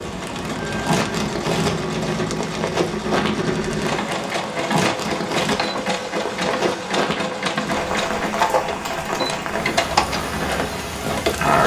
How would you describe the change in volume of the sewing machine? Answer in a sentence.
The volume of the sewing machine stays about the same.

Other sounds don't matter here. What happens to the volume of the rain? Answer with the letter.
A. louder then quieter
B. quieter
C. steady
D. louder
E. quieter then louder
C.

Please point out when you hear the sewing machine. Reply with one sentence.
The sewing machine can be heard from 0.0 to 11.6 s.